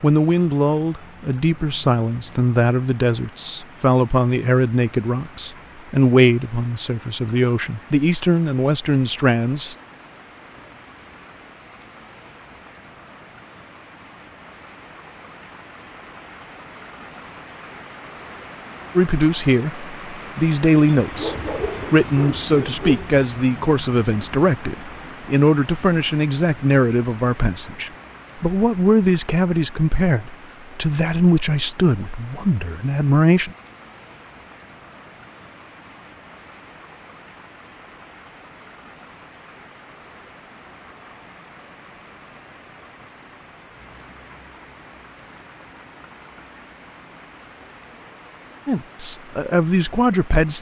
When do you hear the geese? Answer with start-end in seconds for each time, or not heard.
not heard.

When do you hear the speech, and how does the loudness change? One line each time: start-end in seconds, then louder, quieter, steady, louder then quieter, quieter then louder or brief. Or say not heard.
0.0-9.8 steady
18.9-33.5 steady
48.6-50.5 brief.